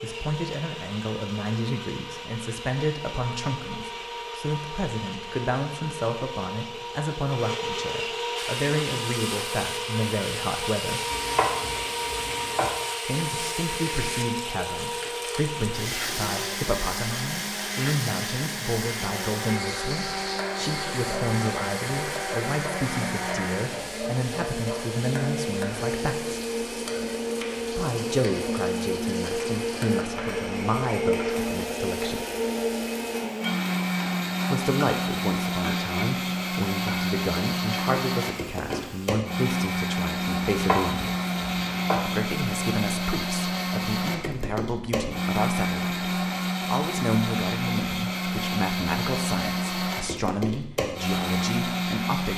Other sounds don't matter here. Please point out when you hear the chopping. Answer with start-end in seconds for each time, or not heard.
11.1-12.7, 40.4-42.0.